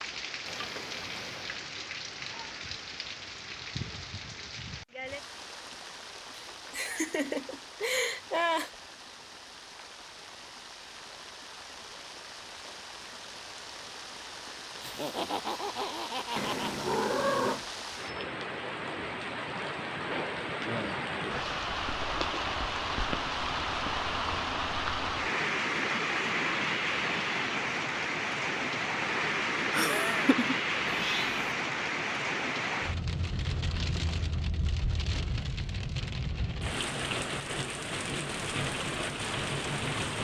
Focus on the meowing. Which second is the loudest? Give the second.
17 s.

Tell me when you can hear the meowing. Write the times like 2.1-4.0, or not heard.
0.5-1.6, 16.4-17.6, 30.9-31.4.